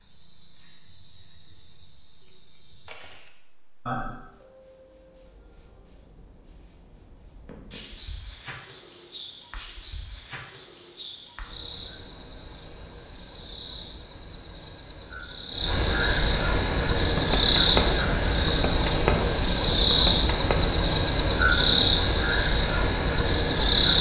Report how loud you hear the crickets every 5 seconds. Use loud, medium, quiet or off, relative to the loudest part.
quiet, quiet, quiet, loud, loud.